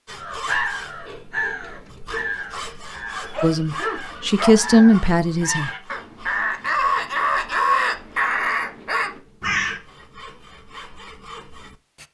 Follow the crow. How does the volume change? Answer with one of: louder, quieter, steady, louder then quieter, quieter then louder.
quieter then louder.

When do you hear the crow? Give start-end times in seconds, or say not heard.
0.1-9.8.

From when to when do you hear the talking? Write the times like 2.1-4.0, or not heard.
3.4-5.7.